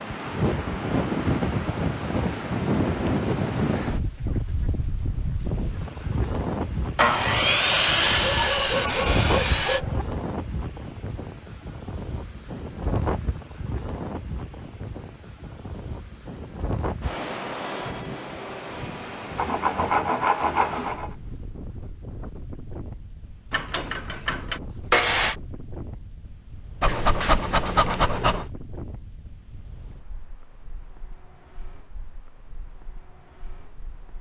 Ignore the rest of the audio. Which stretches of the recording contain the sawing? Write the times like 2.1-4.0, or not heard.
7.0-9.8, 19.4-21.1, 23.5-25.4.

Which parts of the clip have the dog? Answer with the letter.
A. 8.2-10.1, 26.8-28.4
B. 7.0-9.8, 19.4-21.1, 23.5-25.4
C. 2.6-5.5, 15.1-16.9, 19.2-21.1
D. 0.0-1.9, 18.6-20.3
A.